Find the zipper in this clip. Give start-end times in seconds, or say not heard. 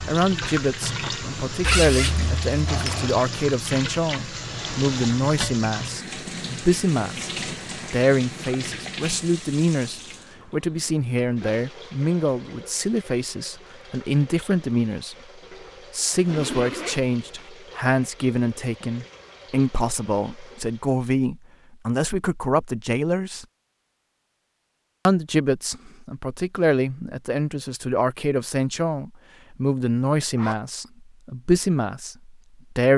1.6-3.1, 16.2-17.5, 30.4-30.9.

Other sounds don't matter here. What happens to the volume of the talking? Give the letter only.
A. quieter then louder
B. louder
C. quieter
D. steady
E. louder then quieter
D.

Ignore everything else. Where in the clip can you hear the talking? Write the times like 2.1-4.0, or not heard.
0.1-15.2, 15.9-23.4, 25.1-32.9.